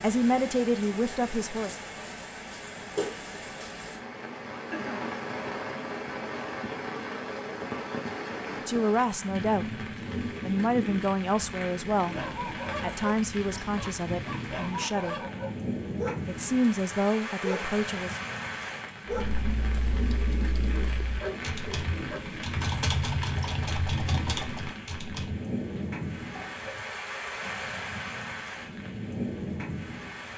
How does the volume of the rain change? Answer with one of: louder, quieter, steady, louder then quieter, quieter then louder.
steady.